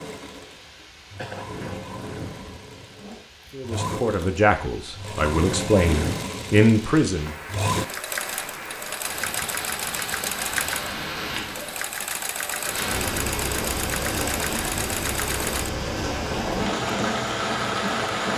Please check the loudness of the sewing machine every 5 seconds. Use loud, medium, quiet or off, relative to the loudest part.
medium, loud, loud, loud.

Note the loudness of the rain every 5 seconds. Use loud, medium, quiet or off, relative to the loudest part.
quiet, medium, loud, loud.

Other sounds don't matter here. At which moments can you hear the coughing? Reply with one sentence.
The coughing can be heard from 1.1 to 1.8 s.